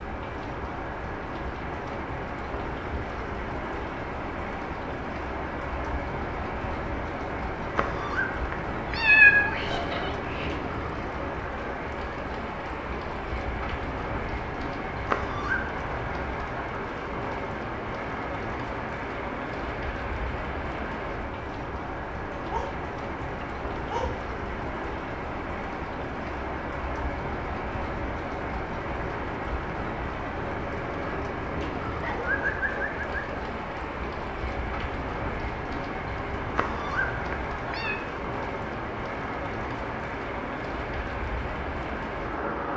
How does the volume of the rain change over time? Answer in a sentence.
The loudness of the rain stays about the same.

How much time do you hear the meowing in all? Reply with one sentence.
The meowing can be heard for 5 seconds in total.